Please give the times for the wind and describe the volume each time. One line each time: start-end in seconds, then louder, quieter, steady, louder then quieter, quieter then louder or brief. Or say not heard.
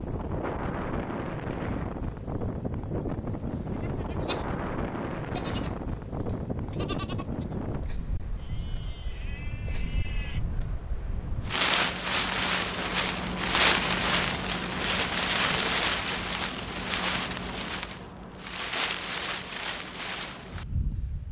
0.0-21.2 louder then quieter.